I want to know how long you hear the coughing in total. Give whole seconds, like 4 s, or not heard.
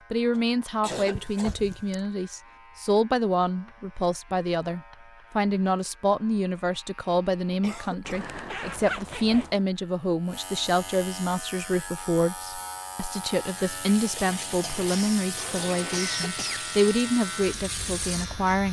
4 s.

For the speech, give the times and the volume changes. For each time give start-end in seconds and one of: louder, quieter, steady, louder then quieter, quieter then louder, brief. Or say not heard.
0.1-18.6 steady.